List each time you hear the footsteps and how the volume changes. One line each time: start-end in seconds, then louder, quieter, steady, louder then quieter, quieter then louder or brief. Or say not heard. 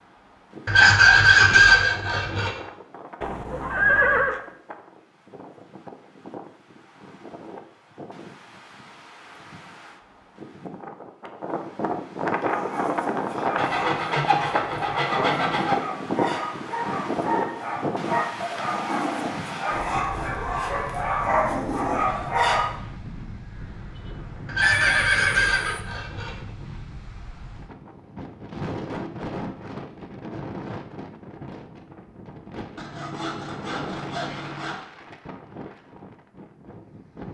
not heard.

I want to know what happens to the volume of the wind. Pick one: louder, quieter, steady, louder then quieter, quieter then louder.
louder then quieter.